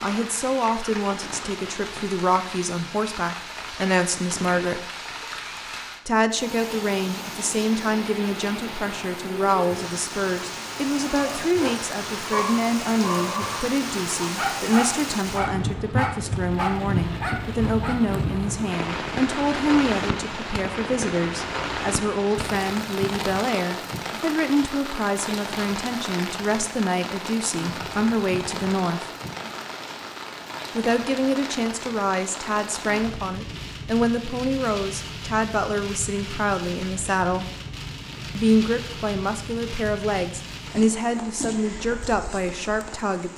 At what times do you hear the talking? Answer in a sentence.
The talking can be heard from 0.0 to 4.8 s, from 6.0 to 29.1 s, from 30.8 to 37.5 s and from 38.4 to 43.3 s.